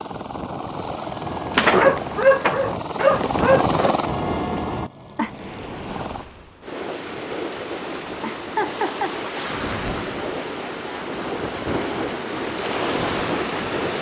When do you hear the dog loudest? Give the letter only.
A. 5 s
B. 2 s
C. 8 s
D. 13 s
B.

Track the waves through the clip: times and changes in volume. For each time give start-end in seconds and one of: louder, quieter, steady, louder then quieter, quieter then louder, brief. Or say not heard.
5.2-13.9 louder.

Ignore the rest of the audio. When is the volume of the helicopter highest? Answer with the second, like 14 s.
4 s.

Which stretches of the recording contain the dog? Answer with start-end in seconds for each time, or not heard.
1.5-4.1.